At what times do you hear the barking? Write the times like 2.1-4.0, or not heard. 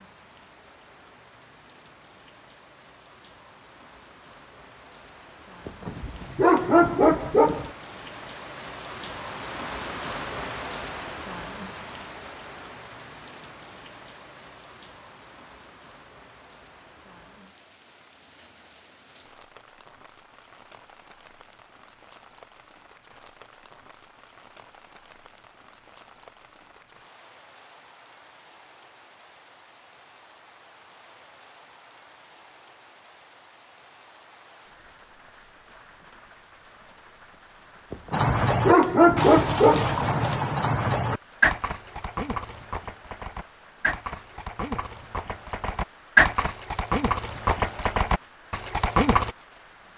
5.7-7.7, 37.9-40.0.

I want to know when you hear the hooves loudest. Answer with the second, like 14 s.
46 s.